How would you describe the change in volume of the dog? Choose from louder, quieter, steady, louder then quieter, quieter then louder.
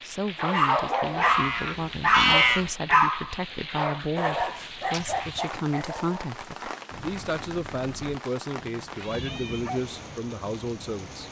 quieter.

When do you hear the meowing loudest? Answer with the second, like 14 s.
2 s.